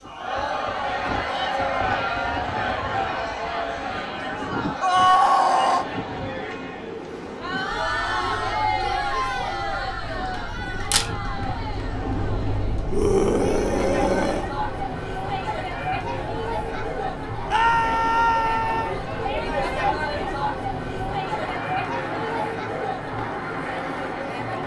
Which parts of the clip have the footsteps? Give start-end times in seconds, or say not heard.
not heard.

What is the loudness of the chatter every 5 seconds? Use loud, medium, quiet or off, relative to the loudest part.
loud, loud, medium, loud, loud.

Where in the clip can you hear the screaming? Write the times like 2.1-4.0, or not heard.
4.8-5.8, 12.9-14.4, 17.5-18.9.